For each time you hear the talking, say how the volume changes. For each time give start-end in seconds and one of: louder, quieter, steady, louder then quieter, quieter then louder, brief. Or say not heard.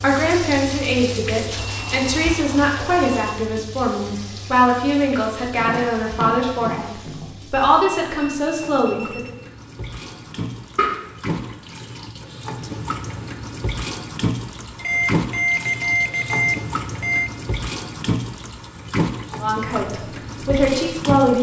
0.0-9.3 steady
19.4-21.3 brief.